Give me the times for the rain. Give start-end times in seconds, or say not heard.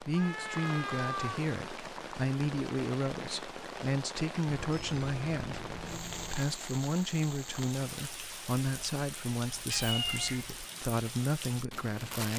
0.0-12.3.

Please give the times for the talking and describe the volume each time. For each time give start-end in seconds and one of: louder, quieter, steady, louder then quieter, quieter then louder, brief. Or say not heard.
0.0-12.3 steady.